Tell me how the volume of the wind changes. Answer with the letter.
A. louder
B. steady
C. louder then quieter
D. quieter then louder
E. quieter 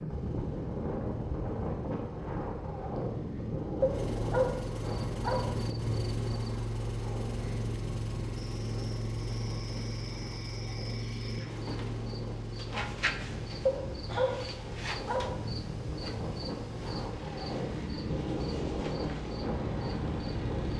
D.